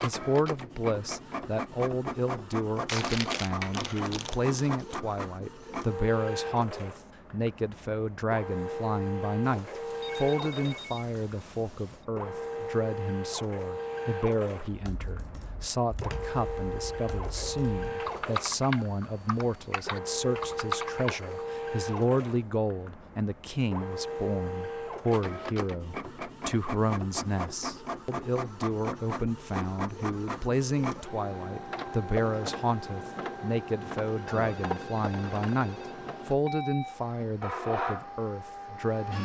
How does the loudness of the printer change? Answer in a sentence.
The volume of the printer stays about the same.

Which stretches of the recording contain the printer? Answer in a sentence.
The printer can be heard from 0.0 to 39.2 s.